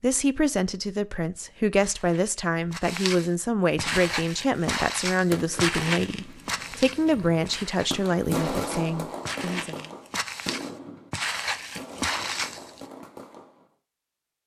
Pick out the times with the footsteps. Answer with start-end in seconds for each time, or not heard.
1.6-12.8.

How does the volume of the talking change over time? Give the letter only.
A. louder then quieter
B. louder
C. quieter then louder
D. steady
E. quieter
D.